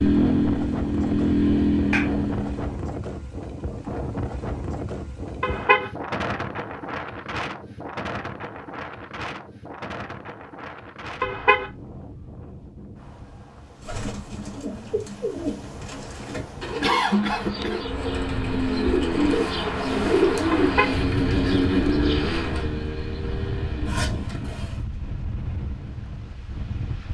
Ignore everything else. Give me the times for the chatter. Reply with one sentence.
You can't hear the chatter here.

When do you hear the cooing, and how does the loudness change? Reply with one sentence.
The cooing can be heard from 13.8 to 22.6 s, getting louder then quieter.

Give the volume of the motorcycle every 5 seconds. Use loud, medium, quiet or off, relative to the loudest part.
loud, off, off, medium, medium, off.